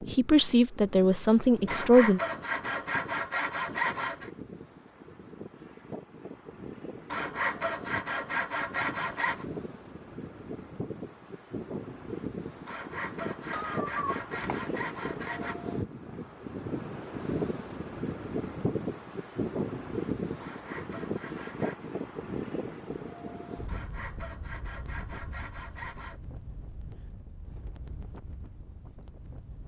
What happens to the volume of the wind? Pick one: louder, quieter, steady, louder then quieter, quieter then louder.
louder then quieter.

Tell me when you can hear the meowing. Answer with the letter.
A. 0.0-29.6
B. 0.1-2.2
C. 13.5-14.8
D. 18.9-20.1
C.